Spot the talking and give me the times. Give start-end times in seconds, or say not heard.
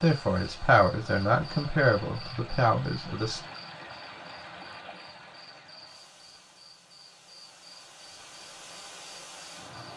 0.0-3.4.